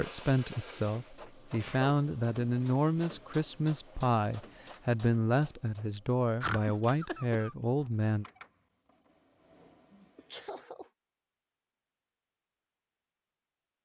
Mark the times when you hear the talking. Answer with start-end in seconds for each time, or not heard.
0.0-8.2.